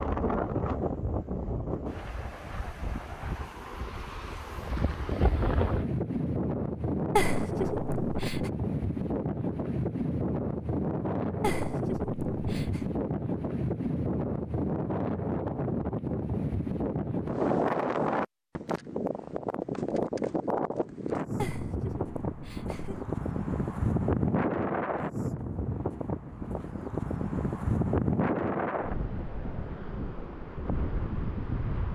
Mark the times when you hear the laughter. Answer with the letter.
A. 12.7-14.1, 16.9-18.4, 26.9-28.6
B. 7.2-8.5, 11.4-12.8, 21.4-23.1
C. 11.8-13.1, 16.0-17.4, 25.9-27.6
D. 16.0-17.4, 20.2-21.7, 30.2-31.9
B.